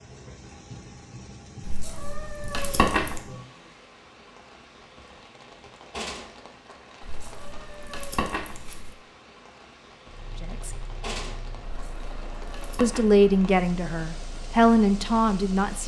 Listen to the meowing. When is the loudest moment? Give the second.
3 s.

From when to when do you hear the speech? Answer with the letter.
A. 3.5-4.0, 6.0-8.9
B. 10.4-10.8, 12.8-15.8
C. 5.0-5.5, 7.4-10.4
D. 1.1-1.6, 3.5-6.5
B.